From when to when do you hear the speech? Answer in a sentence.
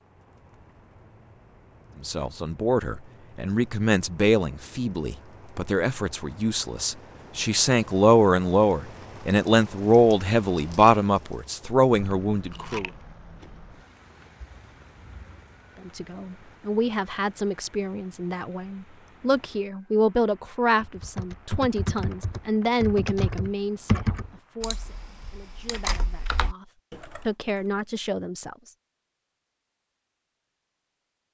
The speech can be heard from 2.0 to 12.9 s and from 15.8 to 28.7 s.